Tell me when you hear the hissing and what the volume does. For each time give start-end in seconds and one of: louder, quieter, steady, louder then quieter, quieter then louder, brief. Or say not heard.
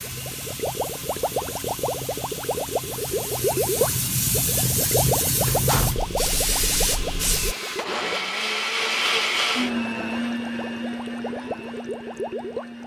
0.0-7.5 louder.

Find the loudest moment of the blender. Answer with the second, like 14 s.
9 s.